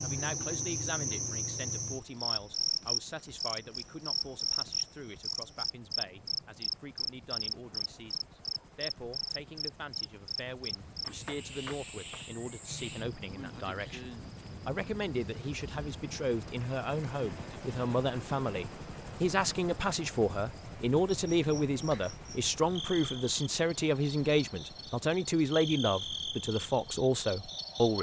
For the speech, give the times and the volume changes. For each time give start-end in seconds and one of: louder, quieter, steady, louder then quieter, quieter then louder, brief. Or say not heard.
0.0-27.9 louder.